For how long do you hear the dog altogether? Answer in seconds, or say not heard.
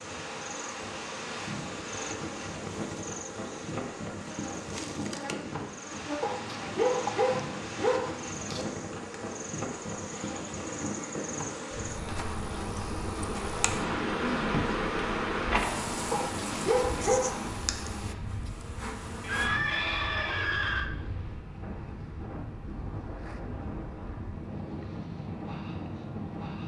4 s.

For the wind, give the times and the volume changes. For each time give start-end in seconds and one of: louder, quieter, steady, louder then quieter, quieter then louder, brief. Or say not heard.
0.0-26.6 steady.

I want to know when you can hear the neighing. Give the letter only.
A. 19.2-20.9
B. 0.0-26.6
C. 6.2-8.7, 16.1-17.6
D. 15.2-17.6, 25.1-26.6
A.